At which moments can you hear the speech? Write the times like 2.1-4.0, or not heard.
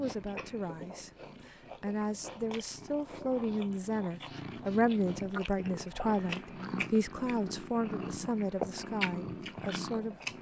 0.0-10.2.